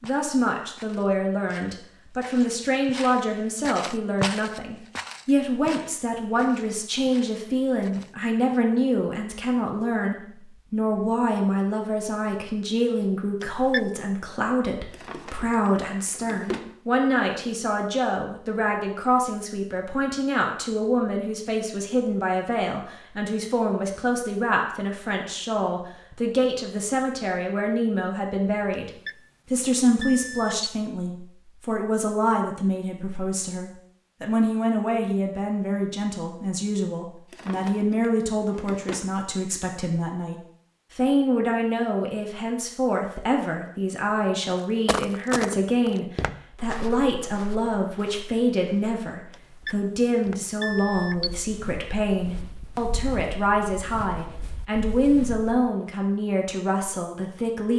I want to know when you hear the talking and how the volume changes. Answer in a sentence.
The talking can be heard from 0.0 to 28.9 s, at a steady volume; and from 29.5 to 57.7 s, at a steady volume.